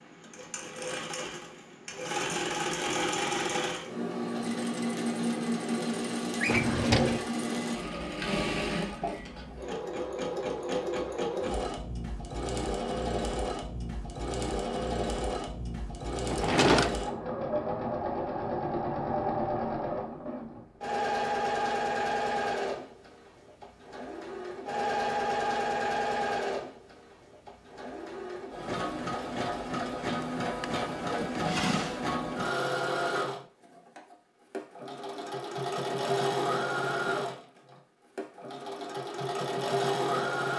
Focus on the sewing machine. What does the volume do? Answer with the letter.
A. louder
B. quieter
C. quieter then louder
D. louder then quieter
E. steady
E.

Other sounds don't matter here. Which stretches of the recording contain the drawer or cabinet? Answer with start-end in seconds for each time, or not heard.
6.4-7.2, 16.3-16.9, 30.2-32.1.